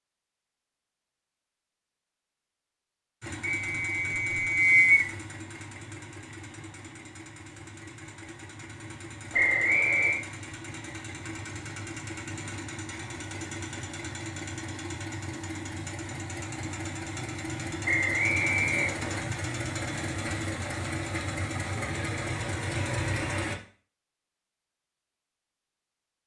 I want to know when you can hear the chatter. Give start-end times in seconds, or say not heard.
not heard.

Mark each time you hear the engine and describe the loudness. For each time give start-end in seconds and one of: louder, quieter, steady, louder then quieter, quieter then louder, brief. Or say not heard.
3.2-23.6 louder.